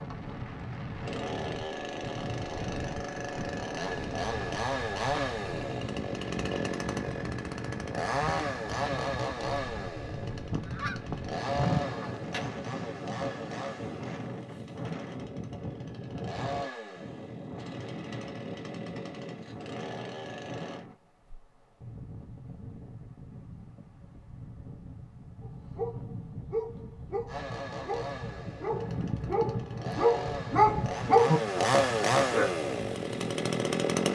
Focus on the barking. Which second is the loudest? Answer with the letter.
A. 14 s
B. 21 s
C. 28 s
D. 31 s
D.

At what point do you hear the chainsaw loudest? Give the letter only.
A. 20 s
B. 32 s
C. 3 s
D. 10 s
B.